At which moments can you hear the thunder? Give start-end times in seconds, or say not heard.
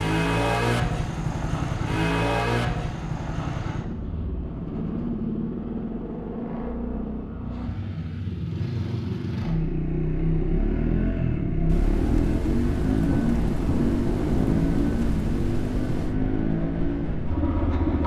11.7-16.1.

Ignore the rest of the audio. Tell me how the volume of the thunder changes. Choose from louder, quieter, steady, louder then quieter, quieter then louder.
louder then quieter.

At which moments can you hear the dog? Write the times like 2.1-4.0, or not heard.
not heard.